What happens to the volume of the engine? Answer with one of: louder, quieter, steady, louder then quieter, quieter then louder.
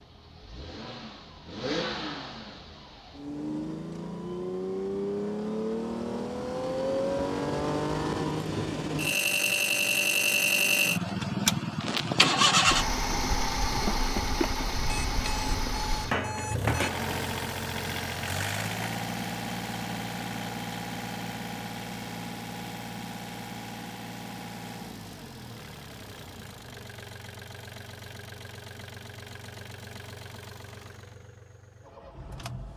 louder then quieter.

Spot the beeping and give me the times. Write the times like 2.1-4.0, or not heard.
14.8-16.9.